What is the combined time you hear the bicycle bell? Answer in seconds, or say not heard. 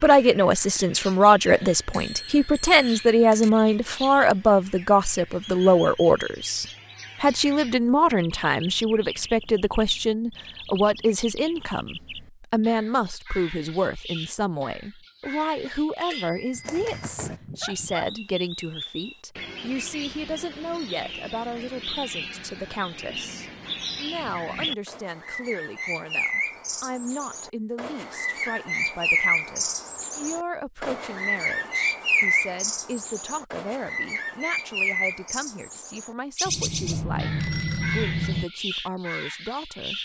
5 s.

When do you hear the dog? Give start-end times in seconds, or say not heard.
16.5-18.1.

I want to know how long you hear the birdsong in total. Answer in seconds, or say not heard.
40 s.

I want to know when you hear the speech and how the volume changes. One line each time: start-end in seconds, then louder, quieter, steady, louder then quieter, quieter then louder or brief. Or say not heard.
0.0-39.9 quieter.